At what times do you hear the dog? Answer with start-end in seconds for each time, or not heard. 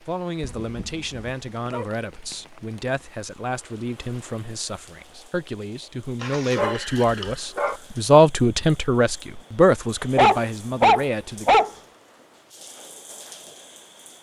0.4-1.9, 6.2-7.8, 10.2-11.7.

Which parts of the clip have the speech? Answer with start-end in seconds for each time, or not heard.
0.0-11.6.